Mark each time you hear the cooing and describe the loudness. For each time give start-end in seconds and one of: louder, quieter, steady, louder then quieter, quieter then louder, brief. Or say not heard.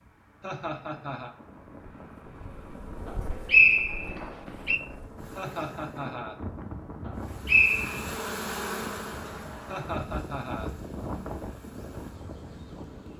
not heard.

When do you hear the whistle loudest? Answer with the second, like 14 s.
4 s.